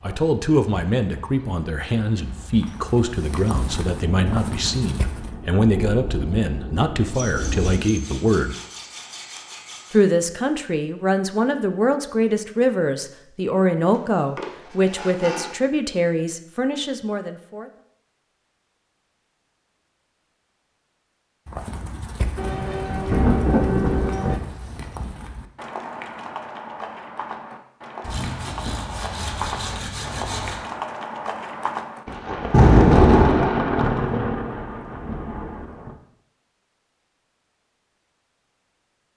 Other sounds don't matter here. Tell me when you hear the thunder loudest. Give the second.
33 s.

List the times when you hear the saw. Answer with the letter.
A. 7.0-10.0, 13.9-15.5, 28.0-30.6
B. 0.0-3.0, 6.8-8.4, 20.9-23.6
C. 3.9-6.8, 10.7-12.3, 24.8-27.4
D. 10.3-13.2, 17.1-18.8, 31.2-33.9
A.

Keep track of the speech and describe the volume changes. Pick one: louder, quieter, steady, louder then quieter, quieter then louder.
steady.